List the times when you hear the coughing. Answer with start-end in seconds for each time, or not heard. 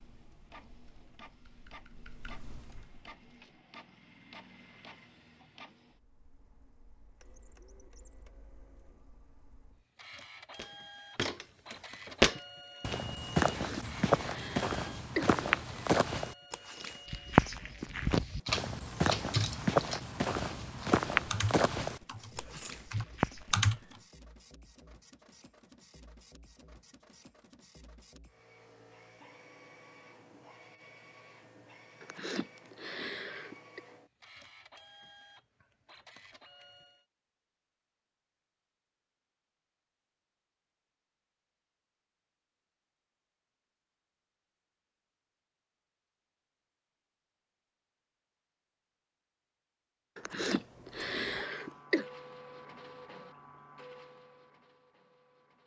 13.4-15.4, 32.0-33.8, 50.1-52.0.